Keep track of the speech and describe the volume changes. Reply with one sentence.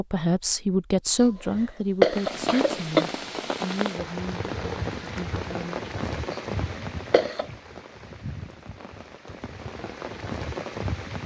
The loudness of the speech goes down.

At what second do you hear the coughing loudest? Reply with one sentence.
The volume of the coughing peaks at 2 seconds.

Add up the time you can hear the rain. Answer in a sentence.
You can hear the rain for 9 seconds altogether.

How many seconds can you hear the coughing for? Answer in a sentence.
You can hear the coughing for 3 seconds altogether.